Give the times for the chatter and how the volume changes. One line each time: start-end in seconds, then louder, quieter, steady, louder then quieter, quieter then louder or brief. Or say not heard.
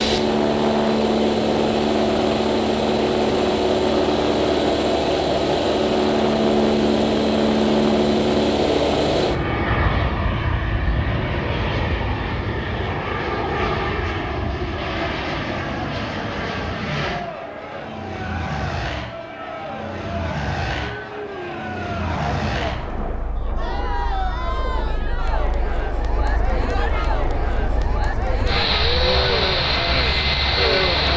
14.7-31.1 louder.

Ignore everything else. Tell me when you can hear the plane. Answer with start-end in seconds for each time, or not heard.
0.0-31.1.